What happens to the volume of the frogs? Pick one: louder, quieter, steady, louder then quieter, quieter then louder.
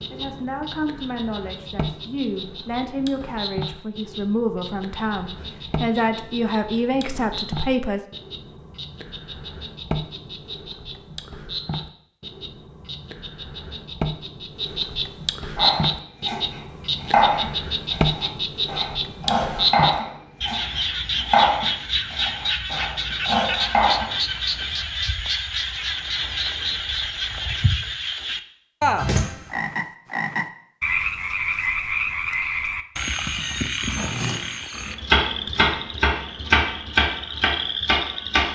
louder.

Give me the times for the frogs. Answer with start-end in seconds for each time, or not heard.
0.0-38.5.